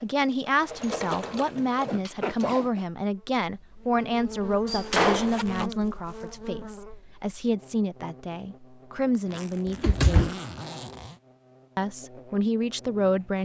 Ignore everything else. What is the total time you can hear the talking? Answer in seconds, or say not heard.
12 s.